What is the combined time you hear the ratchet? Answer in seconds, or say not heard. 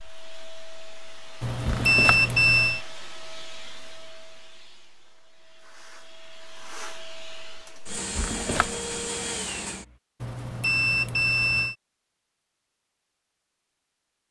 not heard.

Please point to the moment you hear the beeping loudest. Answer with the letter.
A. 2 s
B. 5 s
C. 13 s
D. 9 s
A.